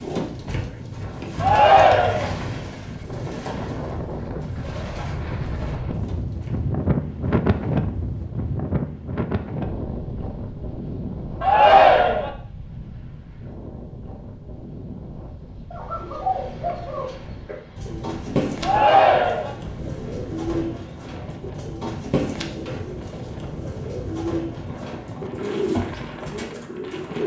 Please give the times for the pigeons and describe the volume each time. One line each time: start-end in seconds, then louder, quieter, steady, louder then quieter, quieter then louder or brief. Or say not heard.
0.0-6.8 quieter
15.7-27.2 steady.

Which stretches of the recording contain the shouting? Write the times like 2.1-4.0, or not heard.
1.4-2.3, 11.4-12.3, 18.6-19.6.